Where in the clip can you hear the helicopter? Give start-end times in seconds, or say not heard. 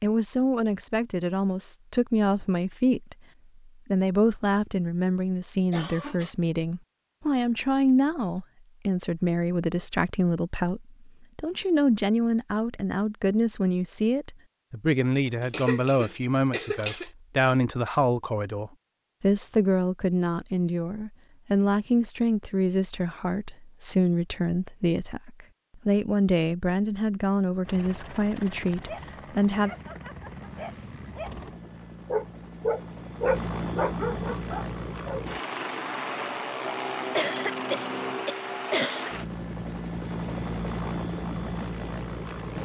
27.6-42.6.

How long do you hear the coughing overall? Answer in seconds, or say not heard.
4 s.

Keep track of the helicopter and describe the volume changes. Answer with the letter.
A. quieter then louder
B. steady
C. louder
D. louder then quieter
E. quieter
C.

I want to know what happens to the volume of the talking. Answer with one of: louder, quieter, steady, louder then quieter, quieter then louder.
steady.